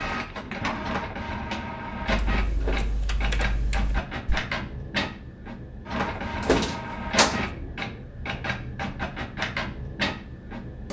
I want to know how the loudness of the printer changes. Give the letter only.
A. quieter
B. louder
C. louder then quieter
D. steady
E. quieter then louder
D.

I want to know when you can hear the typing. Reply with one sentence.
The typing can be heard from 2.0 to 4.4 s.